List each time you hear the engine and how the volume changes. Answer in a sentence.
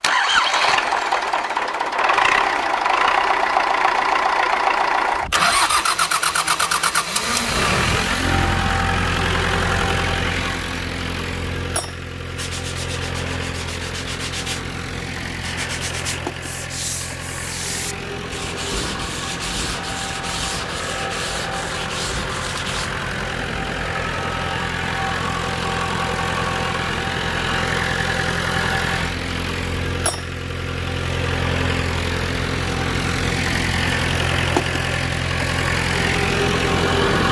The engine can be heard from 0.0 to 37.2 s, getting quieter then louder.